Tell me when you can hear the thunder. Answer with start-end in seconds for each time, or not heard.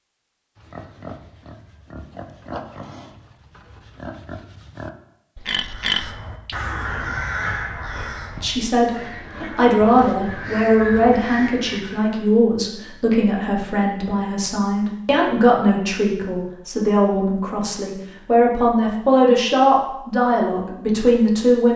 not heard.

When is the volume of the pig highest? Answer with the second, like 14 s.
6 s.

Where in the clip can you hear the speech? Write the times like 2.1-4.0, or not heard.
8.4-21.7.